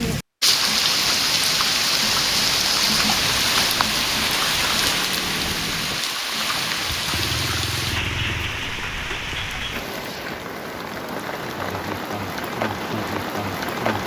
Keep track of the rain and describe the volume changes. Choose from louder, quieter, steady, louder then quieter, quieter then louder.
quieter.